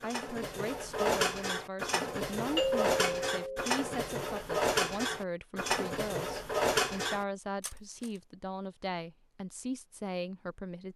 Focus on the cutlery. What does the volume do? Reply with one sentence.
The loudness of the cutlery stays about the same.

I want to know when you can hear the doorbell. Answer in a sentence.
You can hear the doorbell from 2.5 to 3.7 s.